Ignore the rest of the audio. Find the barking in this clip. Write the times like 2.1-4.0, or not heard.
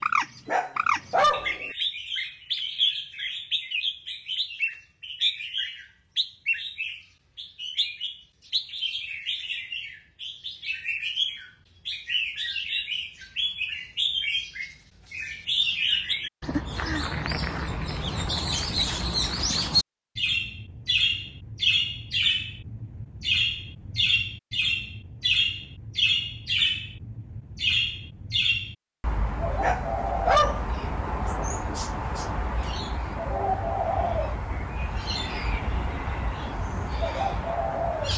0.5-1.7, 29.6-30.8.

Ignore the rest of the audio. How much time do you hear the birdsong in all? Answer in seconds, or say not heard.
38 s.